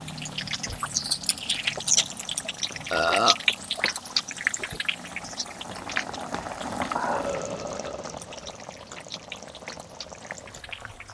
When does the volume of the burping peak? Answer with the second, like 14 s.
3 s.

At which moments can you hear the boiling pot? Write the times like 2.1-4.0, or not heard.
0.0-11.0.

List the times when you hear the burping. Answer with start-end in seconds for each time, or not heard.
2.9-3.4, 7.0-8.6.